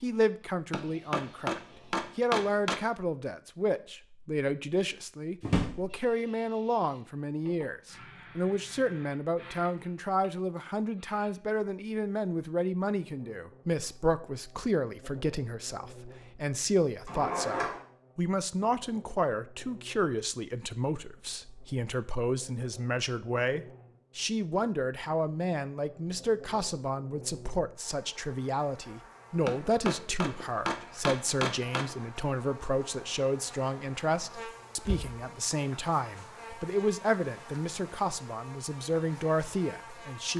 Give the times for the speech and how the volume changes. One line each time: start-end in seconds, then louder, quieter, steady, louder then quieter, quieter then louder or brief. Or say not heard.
0.0-40.3 steady.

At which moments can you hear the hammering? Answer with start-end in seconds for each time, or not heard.
0.7-2.8, 29.4-31.9.